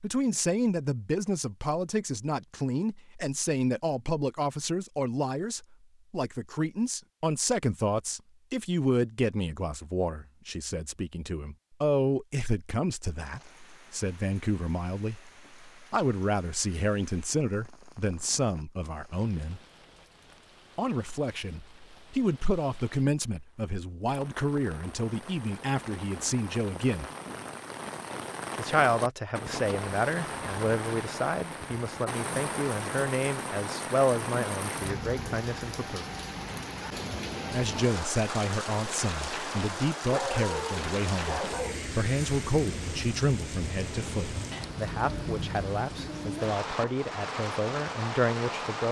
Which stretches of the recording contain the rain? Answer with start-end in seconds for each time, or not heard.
13.2-48.8.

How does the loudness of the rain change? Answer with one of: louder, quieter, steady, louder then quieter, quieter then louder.
louder.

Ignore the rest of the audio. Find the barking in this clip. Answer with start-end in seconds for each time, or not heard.
40.0-41.9.